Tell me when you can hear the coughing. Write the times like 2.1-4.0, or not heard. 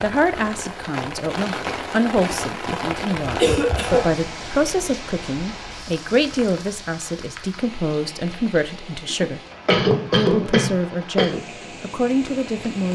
3.4-4.0, 9.1-11.4.